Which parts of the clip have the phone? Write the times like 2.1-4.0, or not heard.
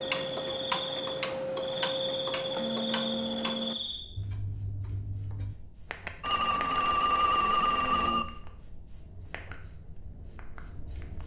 6.2-8.2.